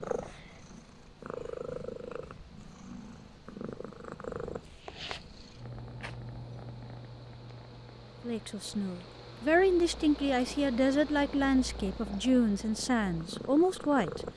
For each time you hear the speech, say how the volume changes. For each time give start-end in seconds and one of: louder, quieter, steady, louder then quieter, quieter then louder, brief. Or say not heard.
8.2-14.2 steady.